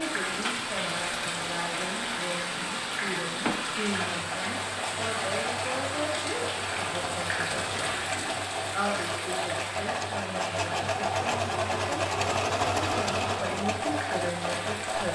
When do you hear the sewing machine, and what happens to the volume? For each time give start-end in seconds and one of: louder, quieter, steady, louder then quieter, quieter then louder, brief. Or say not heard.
0.1-15.1 louder.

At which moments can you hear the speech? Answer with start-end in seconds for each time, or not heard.
0.0-15.1.